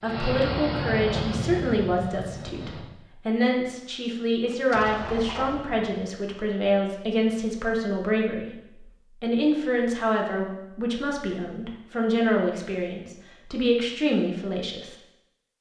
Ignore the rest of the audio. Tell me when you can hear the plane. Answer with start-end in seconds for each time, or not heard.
0.0-2.9.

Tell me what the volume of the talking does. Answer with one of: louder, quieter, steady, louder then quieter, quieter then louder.
steady.